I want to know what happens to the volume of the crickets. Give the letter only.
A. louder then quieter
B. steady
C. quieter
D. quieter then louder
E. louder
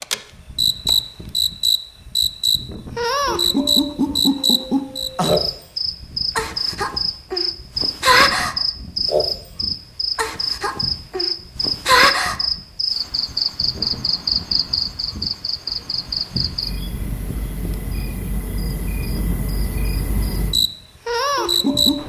C.